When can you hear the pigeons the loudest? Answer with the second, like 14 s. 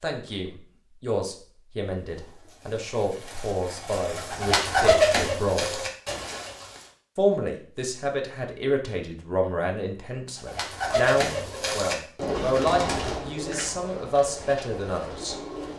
5 s.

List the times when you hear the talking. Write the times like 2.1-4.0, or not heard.
0.0-5.8, 7.2-15.3.